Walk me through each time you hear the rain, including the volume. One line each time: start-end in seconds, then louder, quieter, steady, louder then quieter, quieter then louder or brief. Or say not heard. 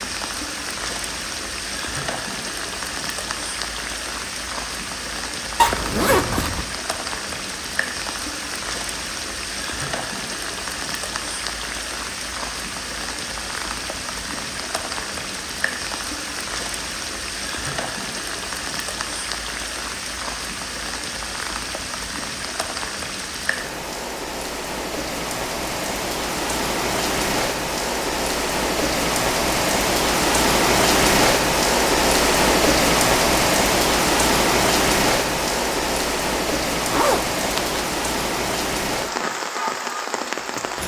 0.0-40.8 louder.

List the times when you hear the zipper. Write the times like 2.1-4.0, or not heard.
5.5-6.7, 36.9-37.8.